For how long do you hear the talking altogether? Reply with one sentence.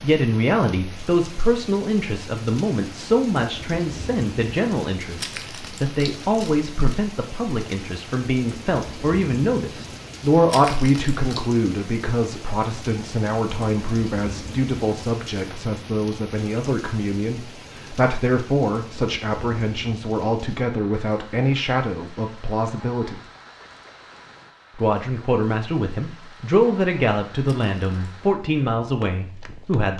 You can hear the talking for 28 seconds altogether.